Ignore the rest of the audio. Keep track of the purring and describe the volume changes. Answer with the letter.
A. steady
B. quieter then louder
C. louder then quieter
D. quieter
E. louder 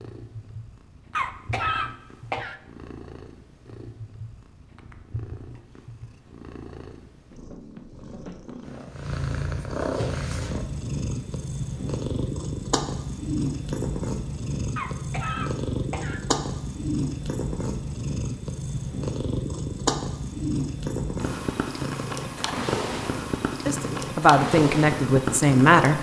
E.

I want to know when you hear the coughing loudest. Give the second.
2 s.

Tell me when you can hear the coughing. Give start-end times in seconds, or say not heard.
1.1-2.6, 14.8-16.2.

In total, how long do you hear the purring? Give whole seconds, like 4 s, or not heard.
26 s.